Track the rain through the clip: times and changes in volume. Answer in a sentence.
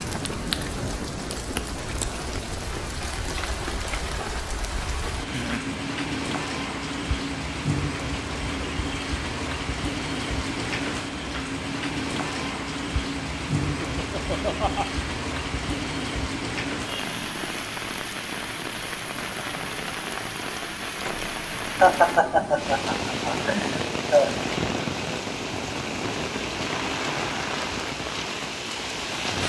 You can hear the rain from 0.0 to 29.4 s, at a steady volume.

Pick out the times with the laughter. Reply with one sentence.
The laughter can be heard from 5.2 to 5.8 s, from 13.6 to 14.8 s and from 21.8 to 24.4 s.